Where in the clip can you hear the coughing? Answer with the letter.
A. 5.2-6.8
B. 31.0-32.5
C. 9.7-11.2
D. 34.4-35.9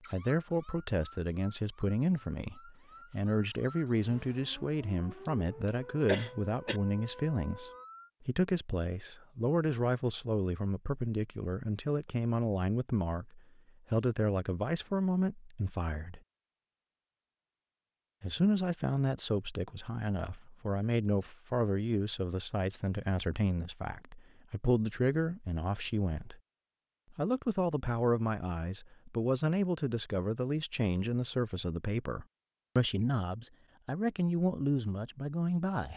A.